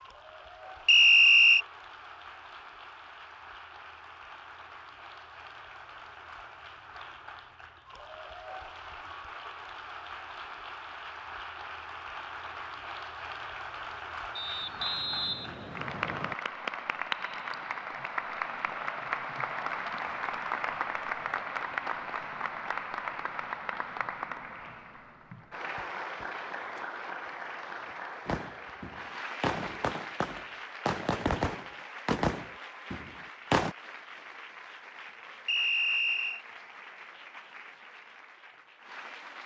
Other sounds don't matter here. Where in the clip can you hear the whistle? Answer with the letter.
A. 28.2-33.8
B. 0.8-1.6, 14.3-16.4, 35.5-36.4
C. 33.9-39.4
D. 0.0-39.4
B.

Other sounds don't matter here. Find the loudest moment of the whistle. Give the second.
1 s.